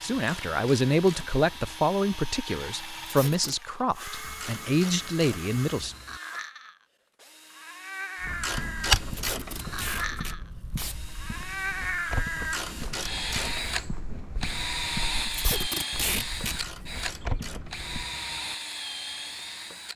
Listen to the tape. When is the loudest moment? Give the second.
16 s.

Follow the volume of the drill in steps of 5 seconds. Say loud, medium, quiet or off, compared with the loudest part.
medium, medium, loud, loud.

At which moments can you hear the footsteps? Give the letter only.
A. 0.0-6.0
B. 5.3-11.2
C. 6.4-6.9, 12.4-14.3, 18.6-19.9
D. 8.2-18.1
D.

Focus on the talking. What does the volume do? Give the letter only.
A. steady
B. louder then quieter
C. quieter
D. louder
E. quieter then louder
E.